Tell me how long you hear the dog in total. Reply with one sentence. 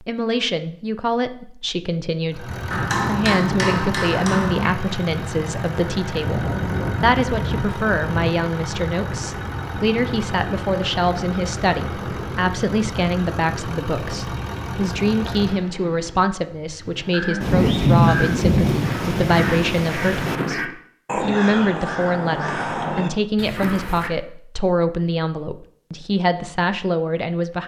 You can't hear the dog here.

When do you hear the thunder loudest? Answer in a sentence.
The volume of the thunder peaks at 18 seconds.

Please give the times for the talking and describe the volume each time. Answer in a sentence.
You can hear the talking from 0.0 to 27.6 s, at a steady volume.